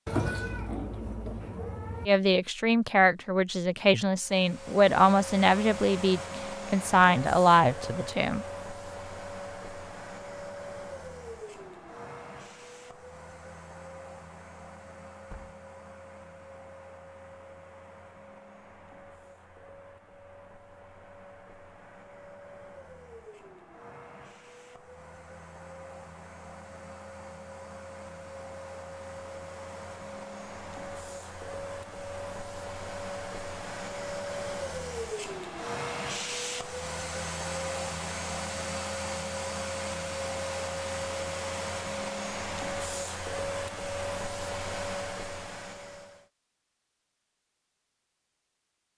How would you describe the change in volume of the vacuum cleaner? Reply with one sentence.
The loudness of the vacuum cleaner goes down, then up.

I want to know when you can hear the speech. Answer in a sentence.
The speech can be heard from 2.0 to 8.4 s.